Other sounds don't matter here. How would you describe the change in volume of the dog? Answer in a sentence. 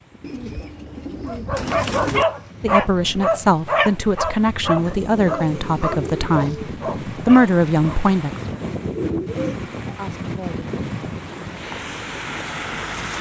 The loudness of the dog goes down.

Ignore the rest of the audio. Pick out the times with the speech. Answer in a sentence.
The speech can be heard from 2.6 to 8.5 s and from 9.9 to 10.7 s.